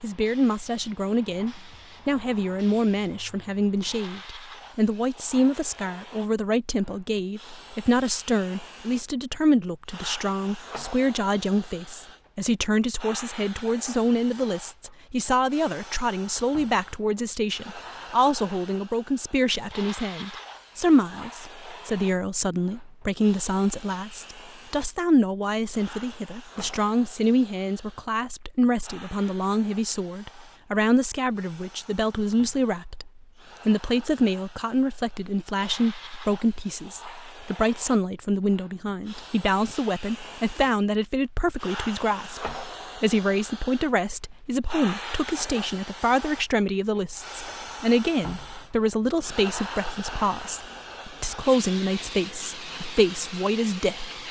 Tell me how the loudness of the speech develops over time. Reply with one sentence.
The volume of the speech stays about the same.